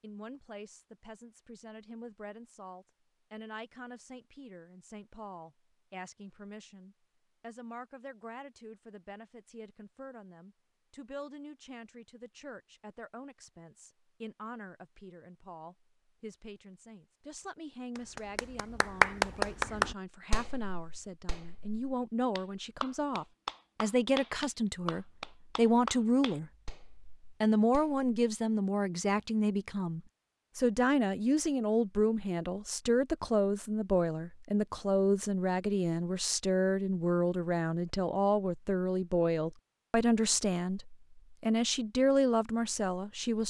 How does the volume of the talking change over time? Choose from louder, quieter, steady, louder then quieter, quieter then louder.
louder.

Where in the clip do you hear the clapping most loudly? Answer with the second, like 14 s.
19 s.